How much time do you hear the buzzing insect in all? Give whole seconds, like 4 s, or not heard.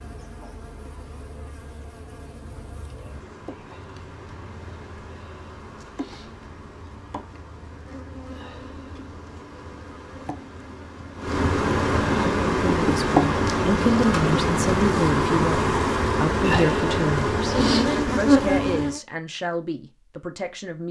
19 s.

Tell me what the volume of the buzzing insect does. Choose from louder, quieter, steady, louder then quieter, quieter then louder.
louder.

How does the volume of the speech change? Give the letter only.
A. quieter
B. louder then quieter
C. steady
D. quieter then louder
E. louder
A.